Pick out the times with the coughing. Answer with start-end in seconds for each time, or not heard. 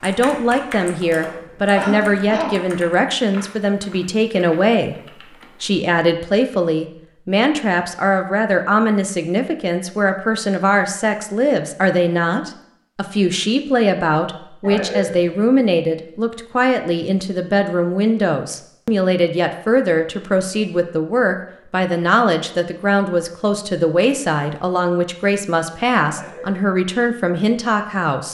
1.2-2.6, 14.6-15.2, 26.1-26.8.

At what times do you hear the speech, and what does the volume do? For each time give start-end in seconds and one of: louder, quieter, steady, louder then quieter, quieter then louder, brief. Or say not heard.
0.0-28.2 steady.